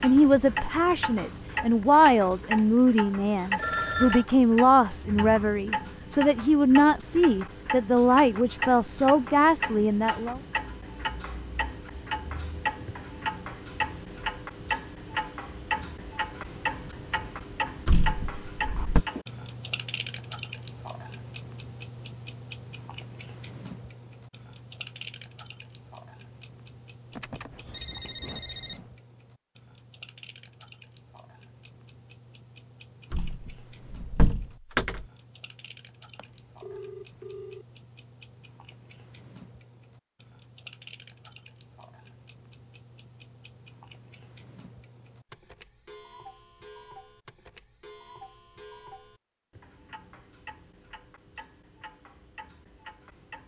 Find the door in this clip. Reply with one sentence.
You can hear the door from 17.9 to 19.1 s and from 33.1 to 35.0 s.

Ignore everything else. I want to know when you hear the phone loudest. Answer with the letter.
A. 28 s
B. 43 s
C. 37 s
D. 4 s
D.